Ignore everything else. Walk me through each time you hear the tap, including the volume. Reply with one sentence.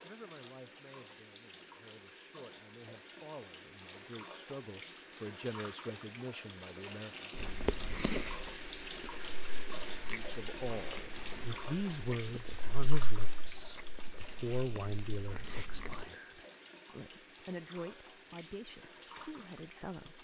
The tap can be heard from 0.0 to 20.1 s, getting louder then quieter.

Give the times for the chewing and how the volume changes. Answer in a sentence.
You can hear the chewing briefly from 7.3 to 8.4 s; and from 9.2 to 16.1 s, getting quieter then louder.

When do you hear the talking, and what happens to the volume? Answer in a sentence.
The talking can be heard from 0.0 to 7.3 s, getting louder; and from 10.1 to 20.1 s, getting quieter.